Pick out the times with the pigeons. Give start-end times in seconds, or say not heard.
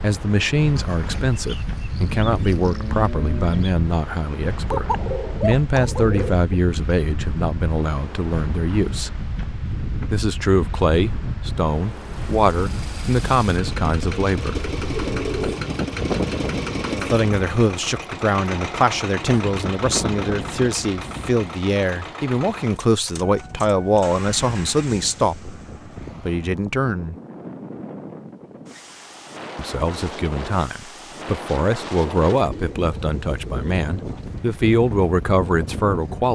4.7-6.5, 14.6-15.7, 32.5-34.4.